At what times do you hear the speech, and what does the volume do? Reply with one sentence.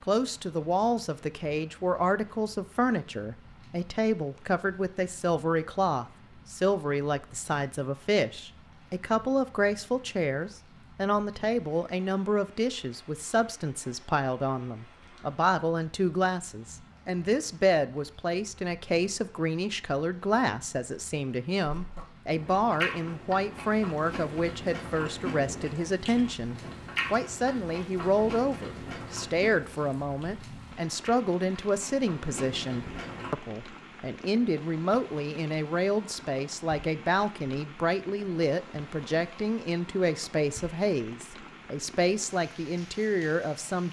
The speech can be heard from 0.0 to 43.8 s, at a steady volume.